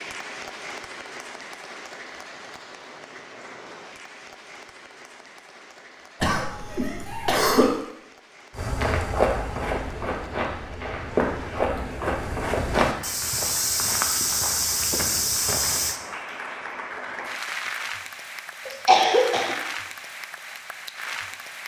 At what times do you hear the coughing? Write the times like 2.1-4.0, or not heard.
6.2-7.7, 18.6-19.6.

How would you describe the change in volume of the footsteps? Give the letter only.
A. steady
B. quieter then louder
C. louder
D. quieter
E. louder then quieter
A.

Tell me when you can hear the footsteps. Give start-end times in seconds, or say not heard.
8.6-15.9.